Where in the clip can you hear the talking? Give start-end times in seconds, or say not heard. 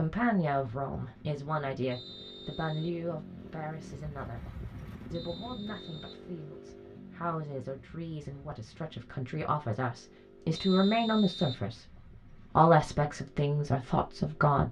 0.0-4.5, 5.1-11.8, 12.6-14.6.